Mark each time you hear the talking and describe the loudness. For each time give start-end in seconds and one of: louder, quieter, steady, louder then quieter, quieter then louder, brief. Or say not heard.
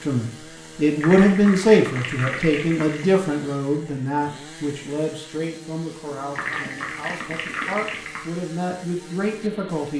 0.0-9.9 quieter then louder.